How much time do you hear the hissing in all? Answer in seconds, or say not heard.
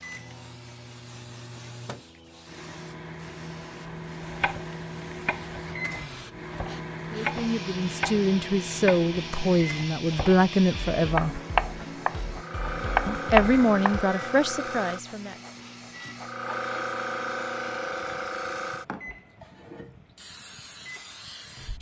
22 s.